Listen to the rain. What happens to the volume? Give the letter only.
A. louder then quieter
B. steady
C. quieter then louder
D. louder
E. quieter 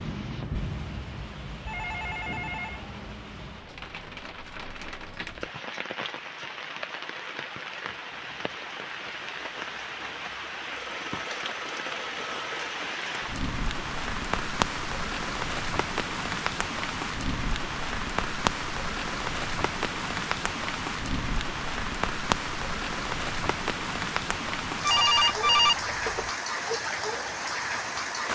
D.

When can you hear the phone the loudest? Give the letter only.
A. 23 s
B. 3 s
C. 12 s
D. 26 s
D.